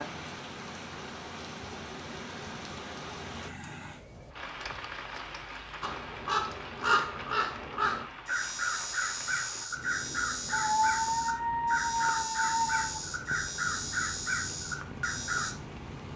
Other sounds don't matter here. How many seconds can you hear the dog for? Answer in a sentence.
The dog can be heard for 2 seconds in total.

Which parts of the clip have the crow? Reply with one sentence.
The crow can be heard from 5.8 to 15.6 s.